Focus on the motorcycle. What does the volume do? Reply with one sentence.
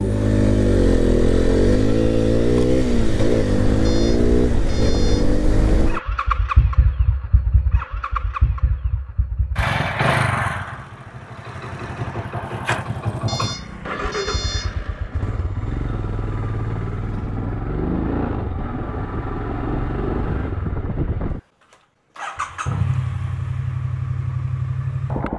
The loudness of the motorcycle goes down.